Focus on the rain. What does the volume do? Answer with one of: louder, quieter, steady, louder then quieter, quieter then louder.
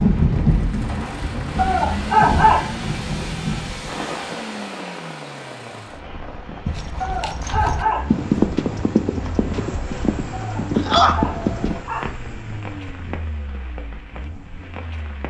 quieter.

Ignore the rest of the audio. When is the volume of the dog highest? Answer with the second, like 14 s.
2 s.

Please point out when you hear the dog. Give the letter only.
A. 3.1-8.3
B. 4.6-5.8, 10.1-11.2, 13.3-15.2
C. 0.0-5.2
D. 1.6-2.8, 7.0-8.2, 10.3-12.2
D.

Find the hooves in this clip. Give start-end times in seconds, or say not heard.
6.7-11.8.